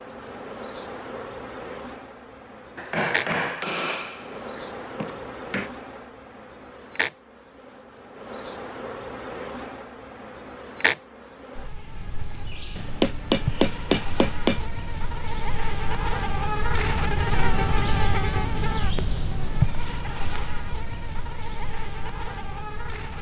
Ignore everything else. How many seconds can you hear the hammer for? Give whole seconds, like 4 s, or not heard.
5 s.